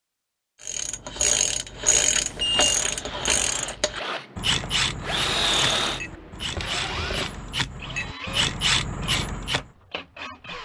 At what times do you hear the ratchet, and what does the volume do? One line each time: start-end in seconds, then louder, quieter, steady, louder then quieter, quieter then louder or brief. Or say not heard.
0.6-9.7 quieter then louder.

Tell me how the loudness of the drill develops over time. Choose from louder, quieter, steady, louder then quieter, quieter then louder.
louder then quieter.